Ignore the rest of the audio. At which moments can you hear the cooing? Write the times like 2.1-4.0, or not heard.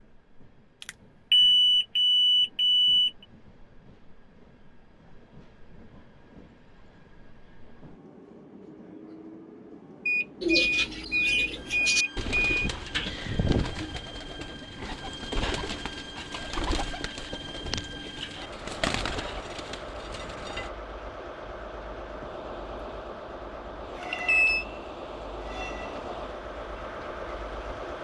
10.4-20.7.